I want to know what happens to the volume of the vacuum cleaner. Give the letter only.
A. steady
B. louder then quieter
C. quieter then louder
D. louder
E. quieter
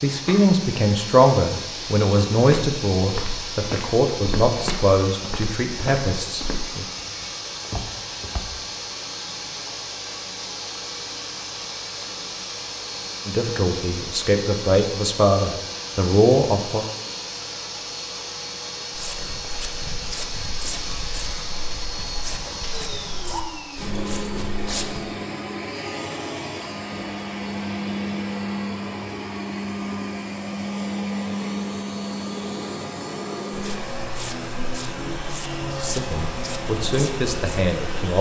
A.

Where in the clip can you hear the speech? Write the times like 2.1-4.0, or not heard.
0.0-6.8, 13.2-16.9, 35.7-38.1.